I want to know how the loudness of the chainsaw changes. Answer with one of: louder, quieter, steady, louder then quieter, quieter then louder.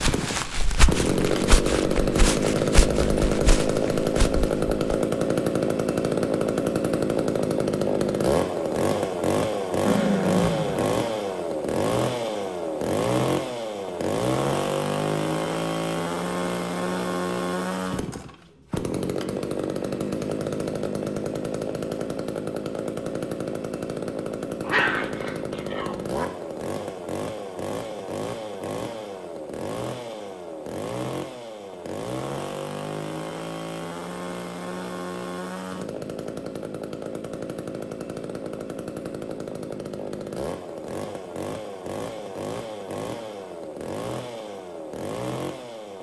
quieter.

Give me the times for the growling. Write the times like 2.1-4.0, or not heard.
9.8-10.9, 24.6-26.2.